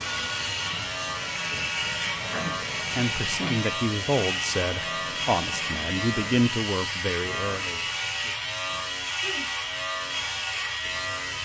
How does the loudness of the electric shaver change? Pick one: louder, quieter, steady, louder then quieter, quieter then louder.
steady.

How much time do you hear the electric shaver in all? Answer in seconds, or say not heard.
11 s.